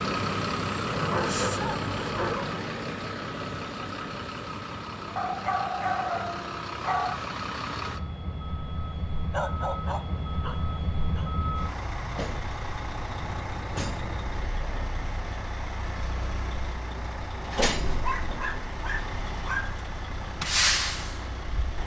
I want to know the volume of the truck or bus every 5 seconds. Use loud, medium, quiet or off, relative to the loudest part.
loud, medium, medium, medium, loud.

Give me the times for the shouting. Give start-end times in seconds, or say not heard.
not heard.